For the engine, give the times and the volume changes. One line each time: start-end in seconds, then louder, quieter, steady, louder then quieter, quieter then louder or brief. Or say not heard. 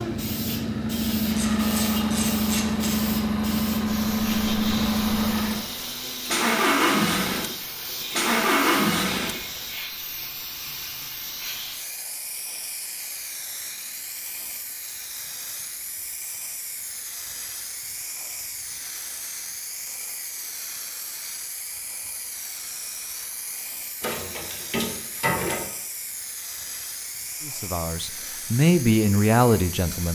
0.0-9.4 steady.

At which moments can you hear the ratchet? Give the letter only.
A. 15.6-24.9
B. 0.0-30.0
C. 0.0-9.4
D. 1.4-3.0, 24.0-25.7
D.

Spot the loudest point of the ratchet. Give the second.
25 s.